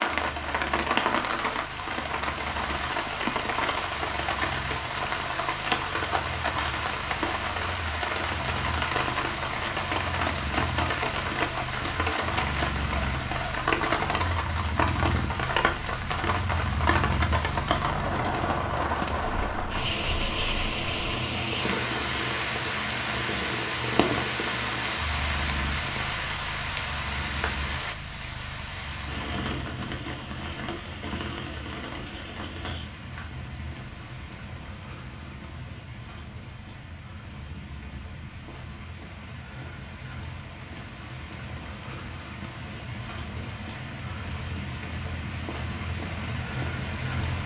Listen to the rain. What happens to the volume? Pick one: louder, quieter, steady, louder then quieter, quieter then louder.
quieter.